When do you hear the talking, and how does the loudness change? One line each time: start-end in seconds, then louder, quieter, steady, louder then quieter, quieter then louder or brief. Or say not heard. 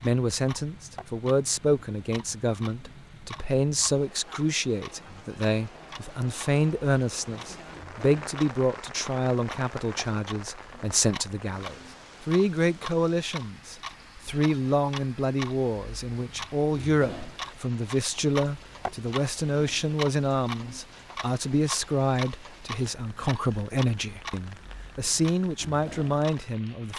0.0-26.9 steady.